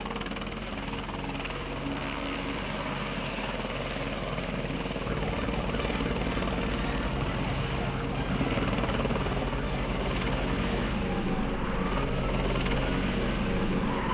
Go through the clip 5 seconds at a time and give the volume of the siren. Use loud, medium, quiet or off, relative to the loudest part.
off, loud, loud.